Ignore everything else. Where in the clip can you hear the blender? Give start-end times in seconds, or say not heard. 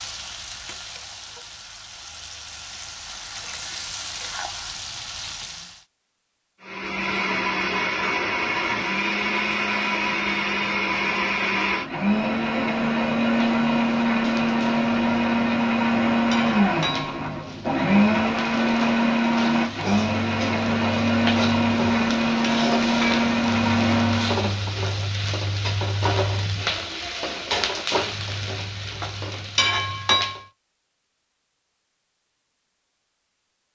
6.6-24.6.